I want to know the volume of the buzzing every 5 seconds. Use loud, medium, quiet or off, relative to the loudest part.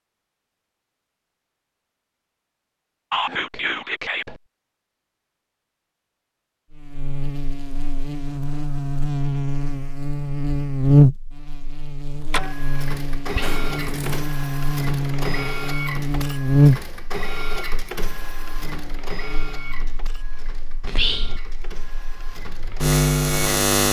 off, medium, loud, loud, loud.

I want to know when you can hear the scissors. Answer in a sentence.
The scissors can be heard from 13.4 to 14.2 s.